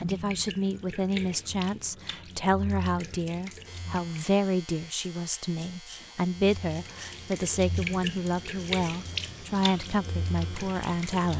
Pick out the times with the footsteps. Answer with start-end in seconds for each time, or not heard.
not heard.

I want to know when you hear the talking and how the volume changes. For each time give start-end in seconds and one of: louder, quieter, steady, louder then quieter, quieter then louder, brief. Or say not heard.
0.0-11.3 steady.